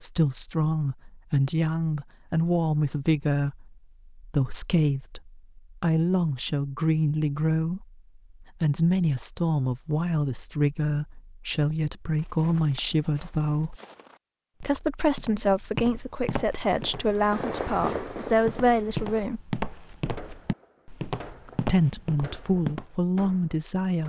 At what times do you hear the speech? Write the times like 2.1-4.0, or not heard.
0.0-13.8, 14.6-19.4, 21.6-24.0.